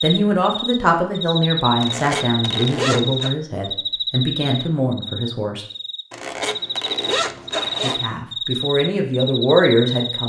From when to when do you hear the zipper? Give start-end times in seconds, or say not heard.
1.8-3.3, 6.1-8.1.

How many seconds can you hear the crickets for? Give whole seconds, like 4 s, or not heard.
10 s.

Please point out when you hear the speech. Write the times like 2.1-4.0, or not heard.
0.0-5.7, 7.8-10.2.